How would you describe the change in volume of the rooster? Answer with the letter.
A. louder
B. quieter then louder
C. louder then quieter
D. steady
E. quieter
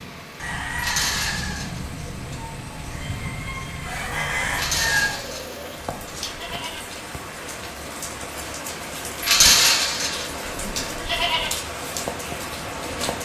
B.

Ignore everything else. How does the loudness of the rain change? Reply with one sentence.
The loudness of the rain goes up.